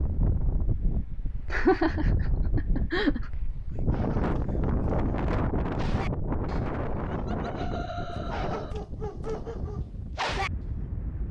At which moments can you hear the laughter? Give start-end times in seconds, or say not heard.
1.5-3.3, 7.0-8.8.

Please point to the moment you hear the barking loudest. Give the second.
10 s.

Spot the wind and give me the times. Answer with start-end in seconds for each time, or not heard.
0.0-11.2.